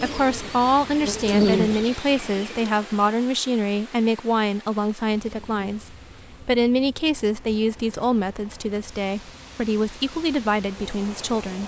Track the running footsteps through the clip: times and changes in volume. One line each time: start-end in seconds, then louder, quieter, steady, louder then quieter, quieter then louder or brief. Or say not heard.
not heard.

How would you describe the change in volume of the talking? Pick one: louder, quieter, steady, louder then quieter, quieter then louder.
steady.